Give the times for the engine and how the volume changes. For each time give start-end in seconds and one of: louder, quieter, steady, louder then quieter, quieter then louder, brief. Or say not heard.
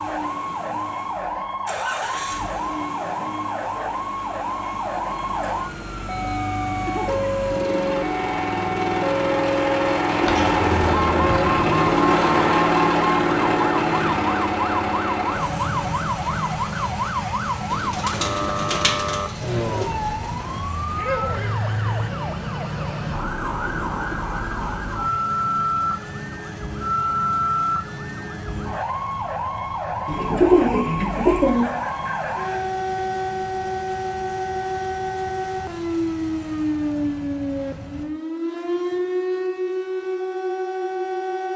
0.0-38.0 louder then quieter.